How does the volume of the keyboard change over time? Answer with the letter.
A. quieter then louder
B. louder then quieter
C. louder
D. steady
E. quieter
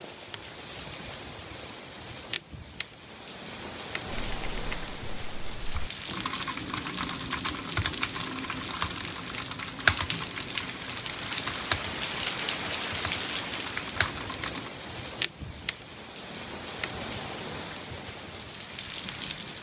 B.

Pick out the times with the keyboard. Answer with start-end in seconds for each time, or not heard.
4.1-14.7.